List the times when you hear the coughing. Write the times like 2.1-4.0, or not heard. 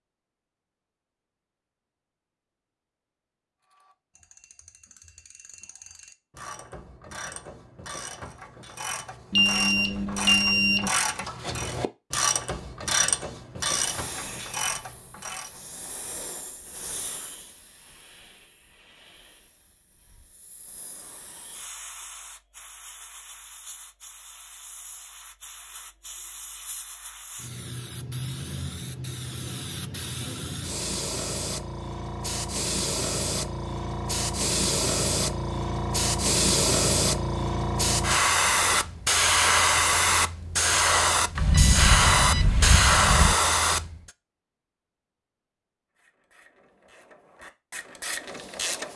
not heard.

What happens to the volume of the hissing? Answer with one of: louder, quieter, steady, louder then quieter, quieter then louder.
louder.